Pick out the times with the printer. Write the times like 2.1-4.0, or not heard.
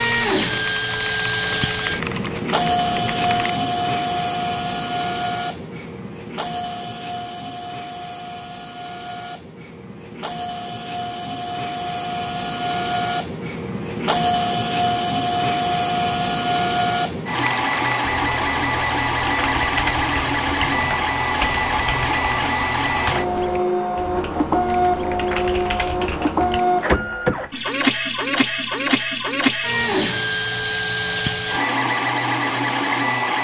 0.0-33.3.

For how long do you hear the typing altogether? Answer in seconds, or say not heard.
13 s.